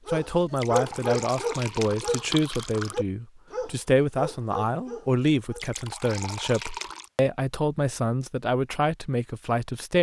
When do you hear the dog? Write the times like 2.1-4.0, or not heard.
0.1-5.7.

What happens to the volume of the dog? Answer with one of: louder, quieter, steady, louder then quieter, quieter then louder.
quieter.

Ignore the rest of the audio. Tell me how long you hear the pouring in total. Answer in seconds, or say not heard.
4 s.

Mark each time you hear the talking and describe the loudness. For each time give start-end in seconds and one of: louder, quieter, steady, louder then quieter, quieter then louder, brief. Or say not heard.
0.1-9.9 steady.